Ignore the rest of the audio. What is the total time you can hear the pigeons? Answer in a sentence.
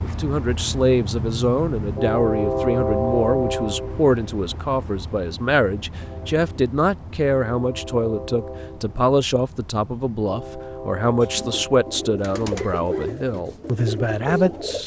You can hear the pigeons for 4 seconds altogether.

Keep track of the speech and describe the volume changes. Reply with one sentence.
The loudness of the speech stays about the same.